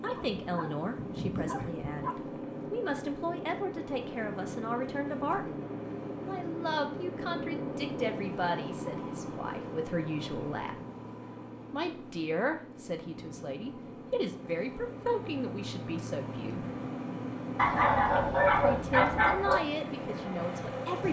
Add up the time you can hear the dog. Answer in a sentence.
The dog can be heard for 4 seconds in total.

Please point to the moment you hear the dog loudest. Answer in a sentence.
The volume of the dog peaks at 19 seconds.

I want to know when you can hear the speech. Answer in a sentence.
You can hear the speech from 0.0 to 10.8 s, from 11.7 to 16.6 s and from 18.5 to 21.0 s.